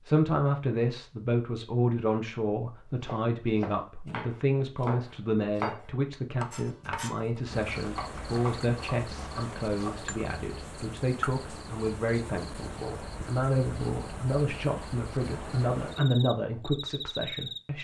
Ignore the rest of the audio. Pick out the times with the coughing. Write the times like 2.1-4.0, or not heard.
not heard.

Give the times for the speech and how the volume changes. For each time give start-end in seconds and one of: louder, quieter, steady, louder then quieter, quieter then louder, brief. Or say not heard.
0.1-17.7 steady.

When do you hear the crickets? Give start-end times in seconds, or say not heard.
7.5-17.6.